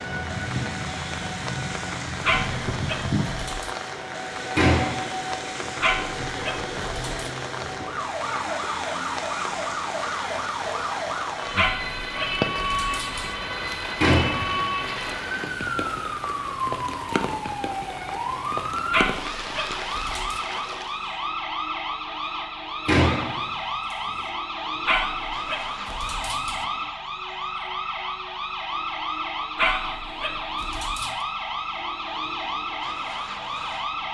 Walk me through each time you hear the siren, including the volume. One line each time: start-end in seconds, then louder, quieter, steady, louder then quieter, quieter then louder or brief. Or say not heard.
0.0-34.0 steady.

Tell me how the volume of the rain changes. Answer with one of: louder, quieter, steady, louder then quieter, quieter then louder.
steady.